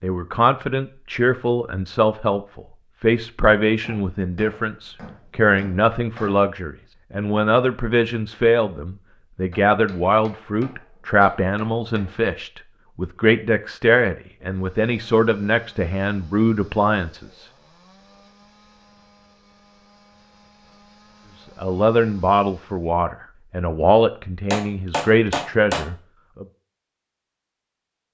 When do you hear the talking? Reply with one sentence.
The talking can be heard from 0.0 to 17.4 s and from 21.6 to 26.4 s.